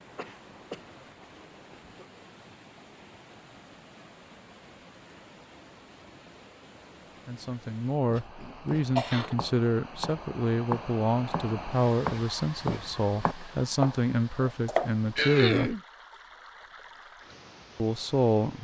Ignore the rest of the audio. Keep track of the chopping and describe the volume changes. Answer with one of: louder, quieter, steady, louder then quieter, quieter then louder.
louder.